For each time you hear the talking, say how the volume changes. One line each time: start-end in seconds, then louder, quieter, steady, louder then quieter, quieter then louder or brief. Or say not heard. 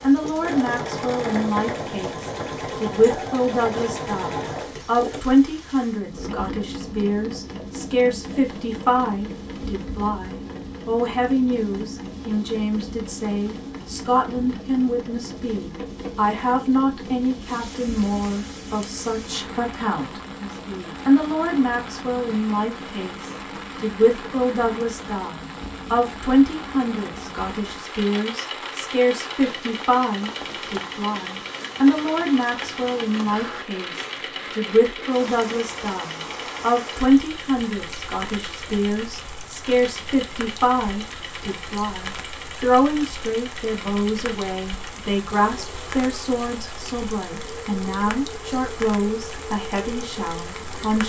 0.0-51.0 steady.